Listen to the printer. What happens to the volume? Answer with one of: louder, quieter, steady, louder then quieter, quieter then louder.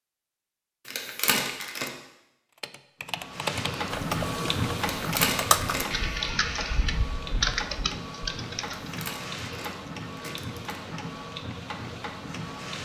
quieter.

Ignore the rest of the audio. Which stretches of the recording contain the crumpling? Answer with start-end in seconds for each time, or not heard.
0.8-1.9, 4.8-6.0, 8.8-10.8.